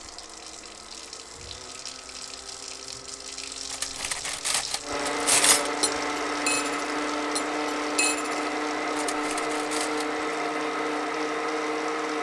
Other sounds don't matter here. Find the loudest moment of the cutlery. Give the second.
5 s.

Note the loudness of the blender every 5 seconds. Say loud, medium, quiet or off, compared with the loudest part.
quiet, loud, loud.